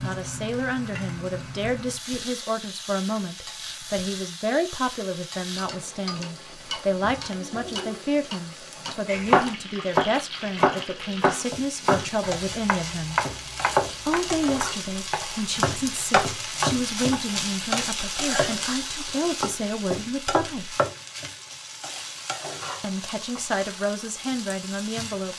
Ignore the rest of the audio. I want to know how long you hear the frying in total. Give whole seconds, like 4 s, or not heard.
25 s.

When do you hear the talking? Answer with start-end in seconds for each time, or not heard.
0.0-13.2, 14.1-20.8, 22.8-25.3.